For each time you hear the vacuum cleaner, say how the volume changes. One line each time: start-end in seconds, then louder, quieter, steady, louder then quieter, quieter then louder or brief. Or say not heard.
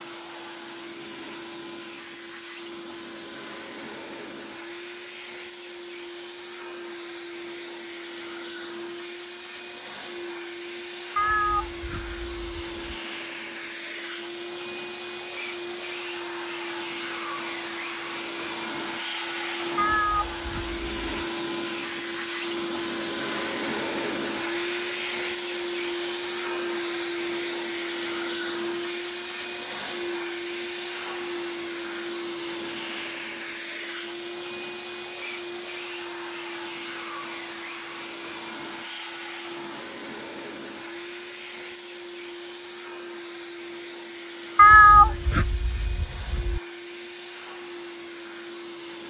0.0-49.0 louder then quieter.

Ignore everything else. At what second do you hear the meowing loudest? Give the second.
45 s.